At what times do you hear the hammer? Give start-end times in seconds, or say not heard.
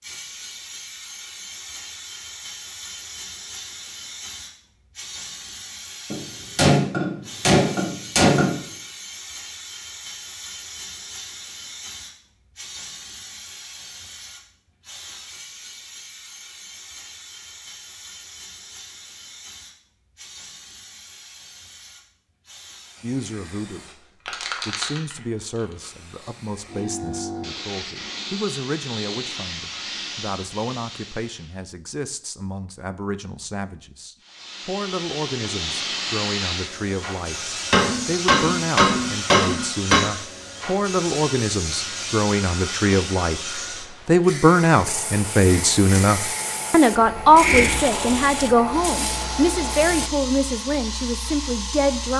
6.1-8.6, 37.7-40.0.